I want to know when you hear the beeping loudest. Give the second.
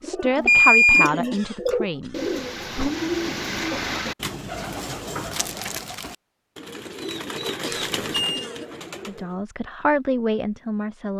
1 s.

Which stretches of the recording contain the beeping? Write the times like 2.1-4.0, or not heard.
0.5-1.1, 7.7-8.4.